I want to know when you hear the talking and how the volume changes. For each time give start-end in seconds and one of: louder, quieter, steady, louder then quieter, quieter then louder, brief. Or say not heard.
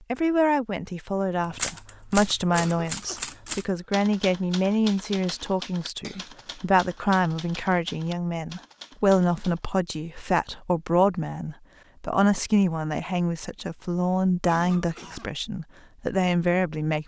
0.1-17.0 steady.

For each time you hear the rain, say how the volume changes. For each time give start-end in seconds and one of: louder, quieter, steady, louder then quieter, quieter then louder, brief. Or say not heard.
not heard.